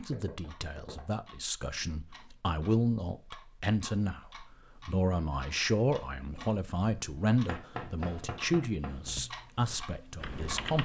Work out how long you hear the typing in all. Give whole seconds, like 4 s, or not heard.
2 s.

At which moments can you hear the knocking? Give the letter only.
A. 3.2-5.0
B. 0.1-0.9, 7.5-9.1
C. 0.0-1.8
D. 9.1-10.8
B.